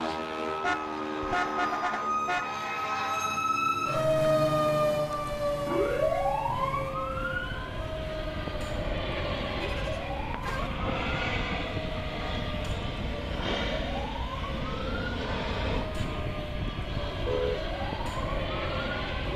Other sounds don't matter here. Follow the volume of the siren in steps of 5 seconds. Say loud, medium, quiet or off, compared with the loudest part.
loud, loud, medium, medium.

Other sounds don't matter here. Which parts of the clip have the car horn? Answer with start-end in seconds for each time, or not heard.
0.6-2.5, 9.6-10.7, 17.1-17.6.